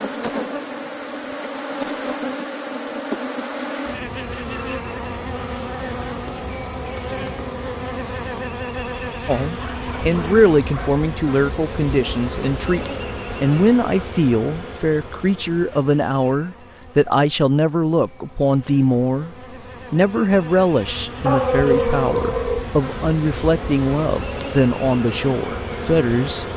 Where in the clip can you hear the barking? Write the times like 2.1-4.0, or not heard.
9.6-11.1, 21.2-22.6.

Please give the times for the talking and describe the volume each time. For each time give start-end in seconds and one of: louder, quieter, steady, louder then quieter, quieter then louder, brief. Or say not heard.
9.2-26.4 steady.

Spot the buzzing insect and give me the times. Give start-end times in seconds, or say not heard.
0.0-26.5.